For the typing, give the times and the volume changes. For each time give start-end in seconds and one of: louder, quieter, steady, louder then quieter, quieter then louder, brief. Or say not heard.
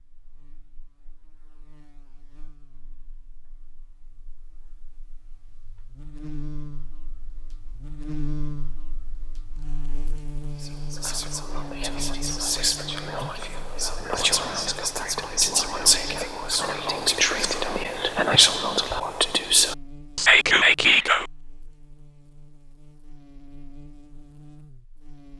not heard.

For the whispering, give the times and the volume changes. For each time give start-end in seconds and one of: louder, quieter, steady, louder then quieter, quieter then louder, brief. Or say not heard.
10.6-21.2 louder.